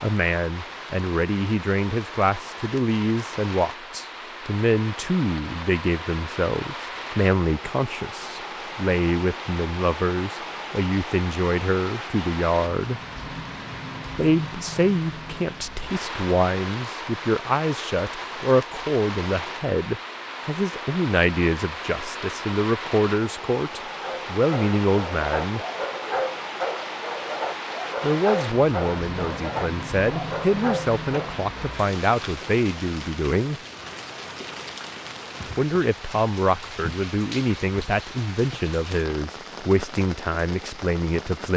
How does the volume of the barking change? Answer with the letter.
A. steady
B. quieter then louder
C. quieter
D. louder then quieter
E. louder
A.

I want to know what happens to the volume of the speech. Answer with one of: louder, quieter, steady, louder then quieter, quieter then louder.
steady.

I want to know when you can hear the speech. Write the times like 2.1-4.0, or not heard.
0.0-13.0, 14.2-25.6, 28.0-33.6, 35.5-41.5.